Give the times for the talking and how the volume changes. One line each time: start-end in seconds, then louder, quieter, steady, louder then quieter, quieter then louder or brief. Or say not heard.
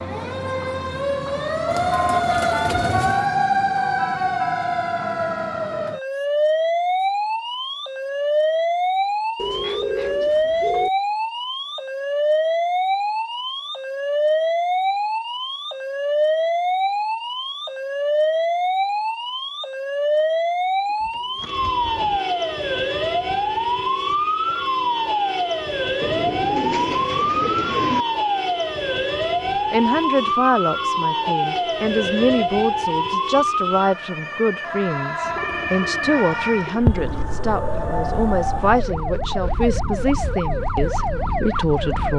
29.5-42.1 steady.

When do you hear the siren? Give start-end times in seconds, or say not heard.
0.0-42.1.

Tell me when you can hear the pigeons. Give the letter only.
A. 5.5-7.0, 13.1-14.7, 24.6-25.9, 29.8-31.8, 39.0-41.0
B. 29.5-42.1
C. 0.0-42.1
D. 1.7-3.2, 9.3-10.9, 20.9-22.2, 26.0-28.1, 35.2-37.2
D.